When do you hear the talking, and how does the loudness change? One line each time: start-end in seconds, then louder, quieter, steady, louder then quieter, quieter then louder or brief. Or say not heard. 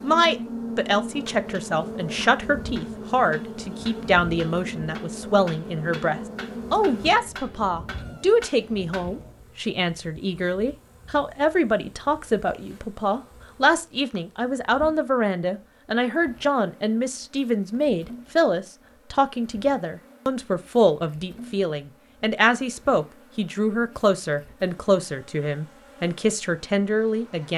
0.0-27.5 steady.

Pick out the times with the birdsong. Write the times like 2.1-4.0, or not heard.
not heard.